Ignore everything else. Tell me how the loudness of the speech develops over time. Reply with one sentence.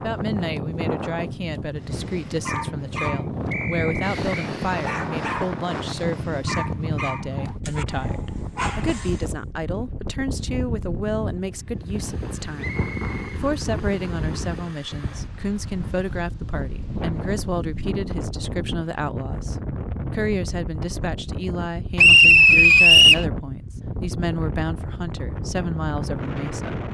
The loudness of the speech stays about the same.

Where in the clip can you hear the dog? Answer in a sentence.
The dog can be heard from 1.9 to 9.3 s.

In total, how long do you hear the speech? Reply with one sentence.
You can hear the speech for 27 seconds altogether.